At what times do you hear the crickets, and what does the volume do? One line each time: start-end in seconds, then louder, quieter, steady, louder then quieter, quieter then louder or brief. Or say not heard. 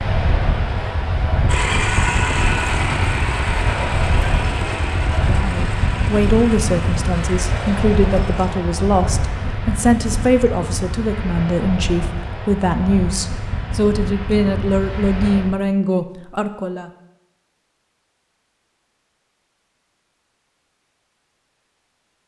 not heard.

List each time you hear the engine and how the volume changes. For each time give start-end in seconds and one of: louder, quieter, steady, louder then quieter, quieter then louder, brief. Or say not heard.
1.4-8.5 quieter.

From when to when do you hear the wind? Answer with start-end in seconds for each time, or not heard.
0.0-15.6.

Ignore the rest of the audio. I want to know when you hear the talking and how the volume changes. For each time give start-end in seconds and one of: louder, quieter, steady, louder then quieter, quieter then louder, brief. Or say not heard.
5.3-16.9 steady.